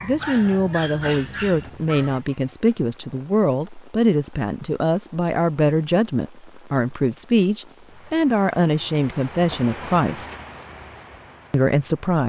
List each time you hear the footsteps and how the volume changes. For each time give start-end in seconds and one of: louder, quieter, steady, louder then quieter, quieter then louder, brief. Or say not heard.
not heard.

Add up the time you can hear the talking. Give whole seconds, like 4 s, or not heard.
11 s.